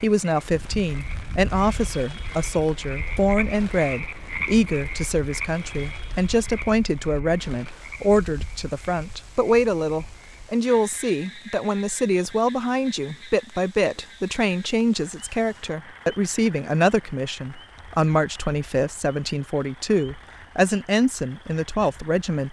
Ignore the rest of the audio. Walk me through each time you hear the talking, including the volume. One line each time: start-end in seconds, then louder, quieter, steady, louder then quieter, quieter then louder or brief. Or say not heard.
0.0-22.4 steady.